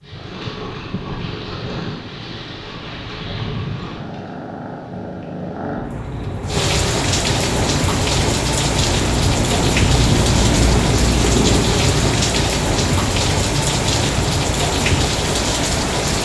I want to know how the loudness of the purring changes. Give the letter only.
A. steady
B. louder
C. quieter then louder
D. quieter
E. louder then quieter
E.